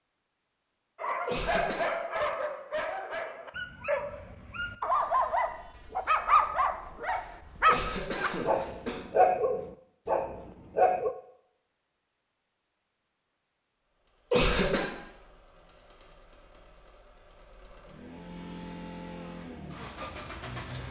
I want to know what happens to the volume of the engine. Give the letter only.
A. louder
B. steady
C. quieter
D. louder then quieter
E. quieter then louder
A.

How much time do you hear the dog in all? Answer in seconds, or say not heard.
10 s.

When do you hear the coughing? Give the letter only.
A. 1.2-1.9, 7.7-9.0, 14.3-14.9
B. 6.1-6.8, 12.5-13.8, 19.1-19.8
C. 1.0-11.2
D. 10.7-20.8
A.